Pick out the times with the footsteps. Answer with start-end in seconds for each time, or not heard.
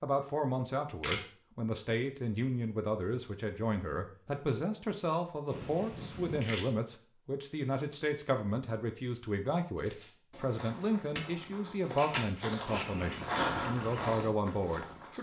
9.8-15.1.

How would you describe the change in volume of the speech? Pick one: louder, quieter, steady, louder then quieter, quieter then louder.
steady.